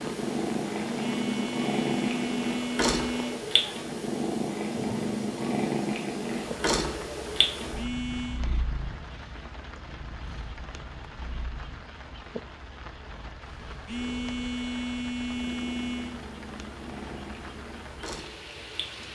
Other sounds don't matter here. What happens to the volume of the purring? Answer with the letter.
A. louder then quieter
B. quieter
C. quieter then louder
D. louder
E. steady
C.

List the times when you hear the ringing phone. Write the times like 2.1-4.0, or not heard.
0.9-3.4, 7.8-8.4, 13.8-16.2.